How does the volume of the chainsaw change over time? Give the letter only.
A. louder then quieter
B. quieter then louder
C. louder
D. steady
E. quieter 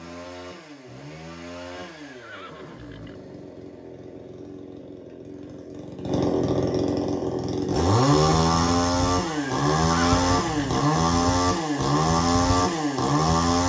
C.